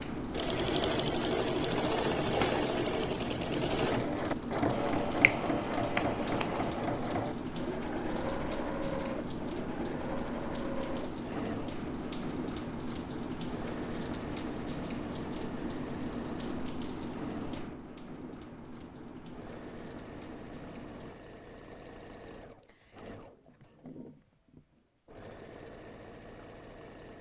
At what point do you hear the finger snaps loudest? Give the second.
6 s.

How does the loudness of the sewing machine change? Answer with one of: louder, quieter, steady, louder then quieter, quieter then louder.
quieter.